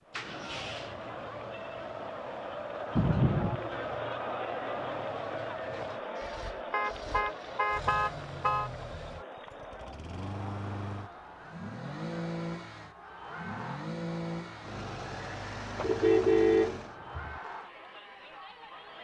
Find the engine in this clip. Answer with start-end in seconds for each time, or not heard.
0.1-17.0.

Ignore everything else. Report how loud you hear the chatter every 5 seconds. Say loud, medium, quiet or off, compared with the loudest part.
loud, loud, medium, medium.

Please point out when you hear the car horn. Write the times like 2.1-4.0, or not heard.
3.0-3.6, 6.7-8.7, 15.8-17.4.